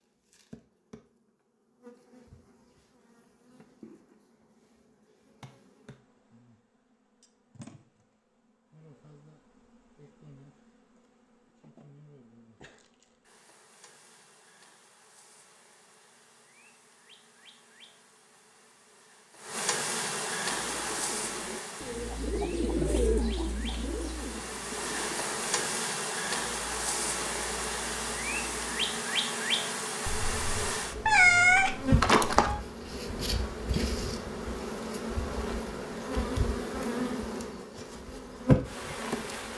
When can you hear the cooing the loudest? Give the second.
23 s.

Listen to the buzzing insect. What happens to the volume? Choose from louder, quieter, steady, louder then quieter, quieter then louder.
louder.